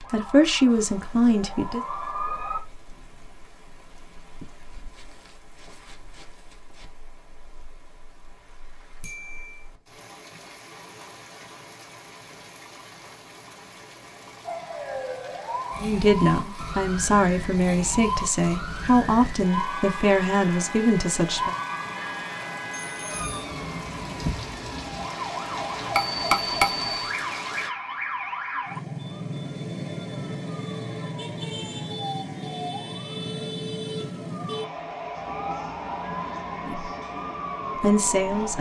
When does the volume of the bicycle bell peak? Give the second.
26 s.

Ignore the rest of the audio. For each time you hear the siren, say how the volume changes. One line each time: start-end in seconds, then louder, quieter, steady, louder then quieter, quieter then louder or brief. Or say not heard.
0.0-2.6 brief
14.4-38.5 steady.